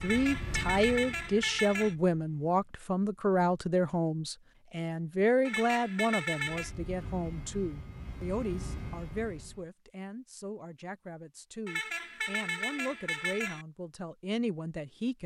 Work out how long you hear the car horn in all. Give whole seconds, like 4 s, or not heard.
5 s.